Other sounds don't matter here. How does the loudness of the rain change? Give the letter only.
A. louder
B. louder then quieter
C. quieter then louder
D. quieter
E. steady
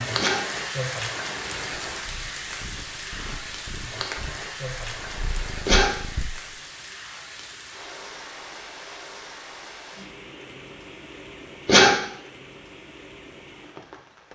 D.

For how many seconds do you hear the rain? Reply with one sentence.
The rain can be heard for 14 seconds in total.